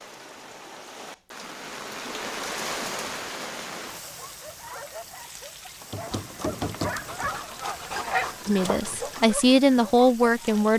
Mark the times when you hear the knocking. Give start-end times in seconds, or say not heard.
5.9-7.5.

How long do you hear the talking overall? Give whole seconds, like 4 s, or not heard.
2 s.